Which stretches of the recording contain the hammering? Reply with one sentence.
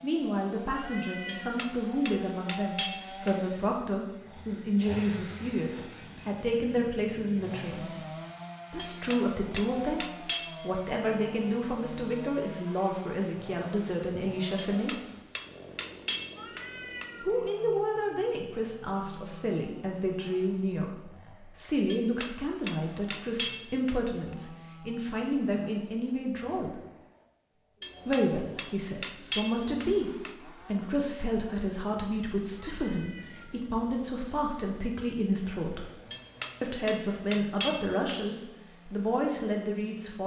The hammering can be heard from 1.2 to 3.4 s, from 8.8 to 10.6 s, from 14.6 to 17.1 s, from 21.9 to 24.4 s, from 27.8 to 30.4 s and from 36.1 to 38.2 s.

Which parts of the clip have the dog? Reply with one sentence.
The dog can't be heard in this clip.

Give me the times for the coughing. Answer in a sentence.
You can't hear the coughing here.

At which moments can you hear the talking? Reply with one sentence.
You can hear the talking from 0.0 to 8.0 s, from 8.7 to 14.9 s, from 17.2 to 26.8 s, from 28.1 to 35.9 s and from 36.6 to 40.2 s.